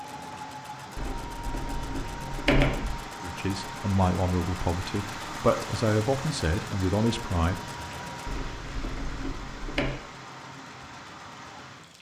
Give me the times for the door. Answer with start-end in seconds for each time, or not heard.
0.9-3.0, 8.2-9.9.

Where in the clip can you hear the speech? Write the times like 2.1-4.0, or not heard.
3.2-7.6.